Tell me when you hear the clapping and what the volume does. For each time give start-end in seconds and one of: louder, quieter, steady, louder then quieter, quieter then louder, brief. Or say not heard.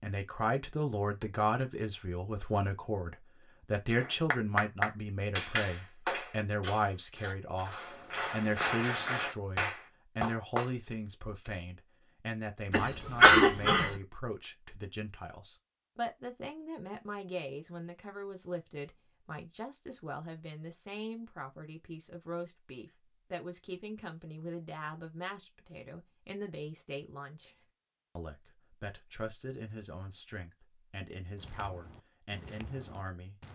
4.0-10.7 quieter then louder.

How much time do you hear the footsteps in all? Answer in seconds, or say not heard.
2 s.